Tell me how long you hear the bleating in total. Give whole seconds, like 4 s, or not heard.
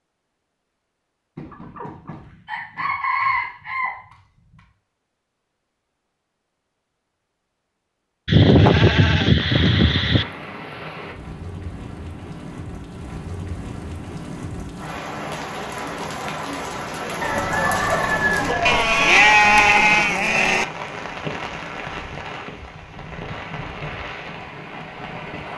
4 s.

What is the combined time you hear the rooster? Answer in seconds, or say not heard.
5 s.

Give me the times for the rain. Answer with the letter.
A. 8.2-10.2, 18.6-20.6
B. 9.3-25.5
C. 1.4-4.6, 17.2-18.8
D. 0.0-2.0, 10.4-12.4
B.